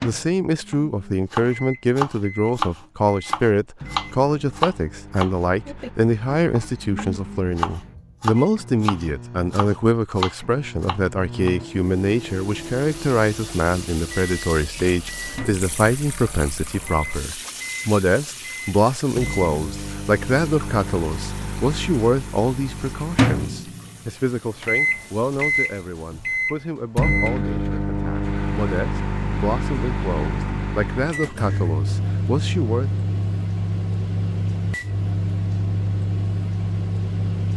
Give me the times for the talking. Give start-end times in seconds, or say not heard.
0.0-32.9.